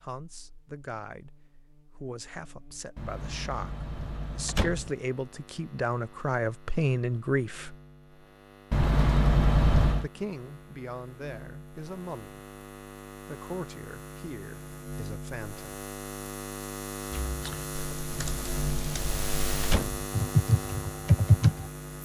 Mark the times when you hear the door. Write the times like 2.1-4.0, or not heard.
3.0-4.9, 8.7-10.1, 18.2-20.1.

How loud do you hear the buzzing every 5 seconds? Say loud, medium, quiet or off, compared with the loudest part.
quiet, quiet, medium, loud, loud.